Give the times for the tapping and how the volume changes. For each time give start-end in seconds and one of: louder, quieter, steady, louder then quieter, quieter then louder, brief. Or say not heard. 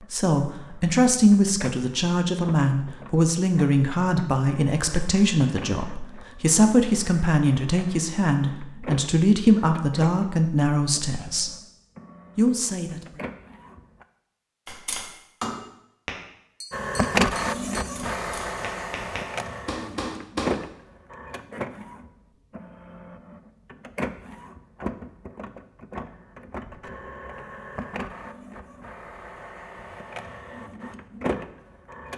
14.7-20.6 quieter then louder.